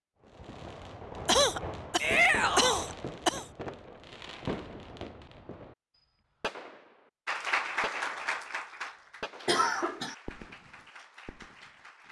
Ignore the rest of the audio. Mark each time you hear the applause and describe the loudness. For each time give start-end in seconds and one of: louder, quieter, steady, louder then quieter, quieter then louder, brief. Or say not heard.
7.2-12.0 quieter.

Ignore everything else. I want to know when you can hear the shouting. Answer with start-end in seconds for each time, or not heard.
2.0-2.9.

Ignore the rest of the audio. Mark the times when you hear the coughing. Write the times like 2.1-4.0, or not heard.
1.2-3.5, 9.4-10.2.